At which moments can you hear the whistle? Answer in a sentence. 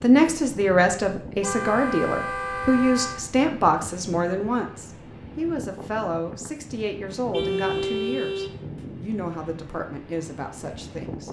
The whistle can't be heard in this clip.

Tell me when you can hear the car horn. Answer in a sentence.
The car horn can be heard from 1.4 to 3.2 s and from 7.3 to 8.6 s.